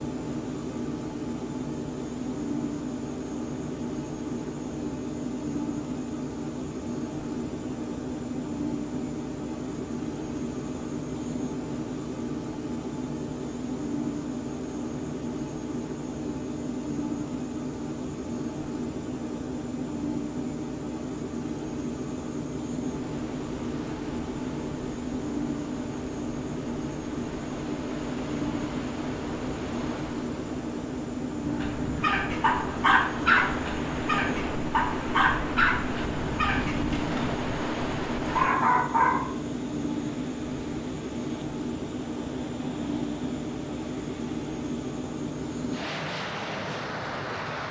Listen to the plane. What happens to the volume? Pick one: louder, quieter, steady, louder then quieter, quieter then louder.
steady.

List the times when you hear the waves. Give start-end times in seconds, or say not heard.
22.9-47.6.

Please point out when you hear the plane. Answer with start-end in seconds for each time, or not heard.
0.0-47.6.